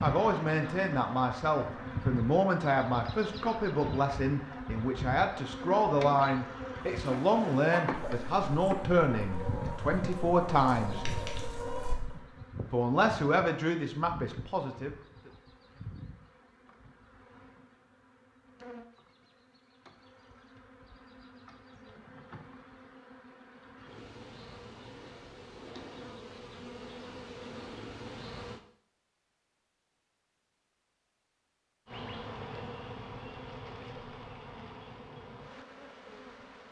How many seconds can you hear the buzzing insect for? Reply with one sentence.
The buzzing insect can be heard for 33 seconds in total.